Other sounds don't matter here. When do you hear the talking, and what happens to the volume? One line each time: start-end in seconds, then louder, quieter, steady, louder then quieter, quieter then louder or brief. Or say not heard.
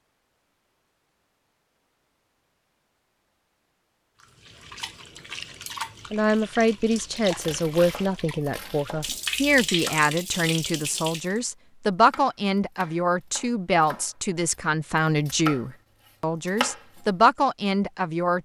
6.1-18.4 steady.